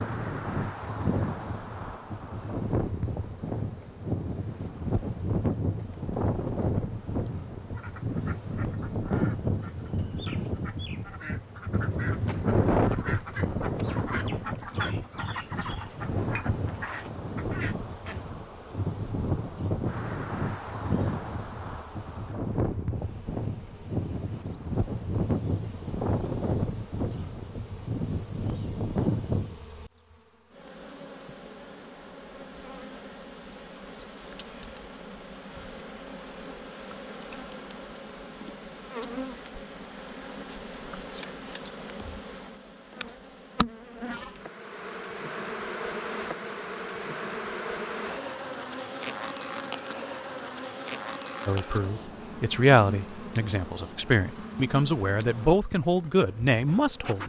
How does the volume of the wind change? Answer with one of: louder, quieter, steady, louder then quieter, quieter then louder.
steady.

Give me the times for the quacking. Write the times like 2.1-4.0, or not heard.
7.6-18.2.